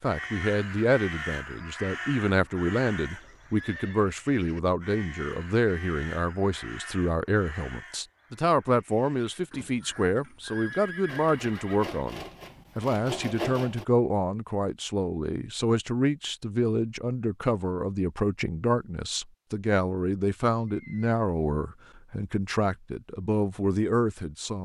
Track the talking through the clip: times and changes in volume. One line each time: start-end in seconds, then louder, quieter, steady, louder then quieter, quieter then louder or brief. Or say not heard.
0.0-24.6 steady.